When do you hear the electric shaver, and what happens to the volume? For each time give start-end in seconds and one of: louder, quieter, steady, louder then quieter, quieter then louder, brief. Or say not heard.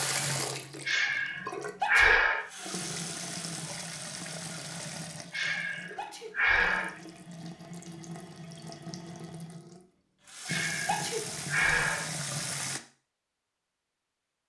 not heard.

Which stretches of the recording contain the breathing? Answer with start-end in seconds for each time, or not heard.
0.8-2.5, 5.3-7.0, 10.4-12.1.